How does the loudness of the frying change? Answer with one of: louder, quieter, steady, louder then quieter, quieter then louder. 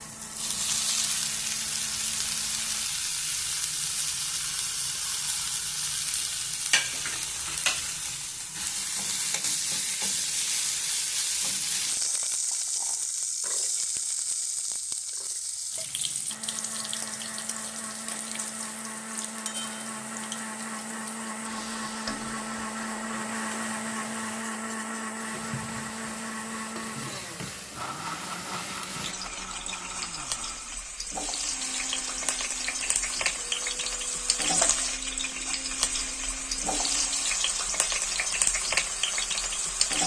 quieter then louder.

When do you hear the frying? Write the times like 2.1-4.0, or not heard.
0.0-40.0.